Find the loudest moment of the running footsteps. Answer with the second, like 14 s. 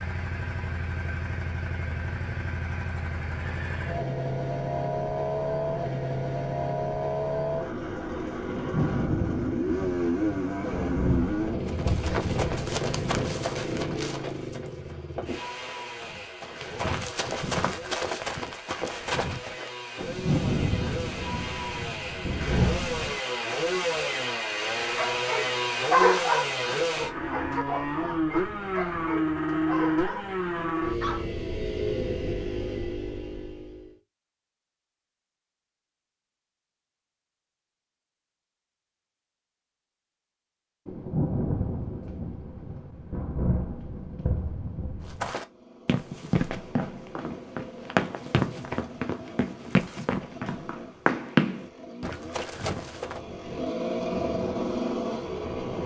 51 s.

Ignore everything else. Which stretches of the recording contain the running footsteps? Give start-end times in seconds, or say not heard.
11.7-19.7, 45.2-53.2.